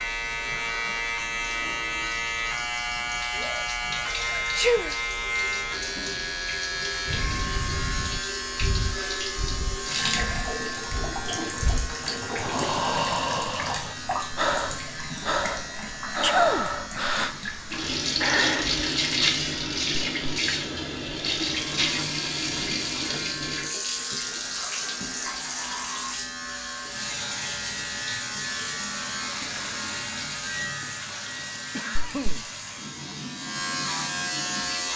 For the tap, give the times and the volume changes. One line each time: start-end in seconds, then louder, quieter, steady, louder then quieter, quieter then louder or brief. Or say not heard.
0.0-34.9 louder then quieter.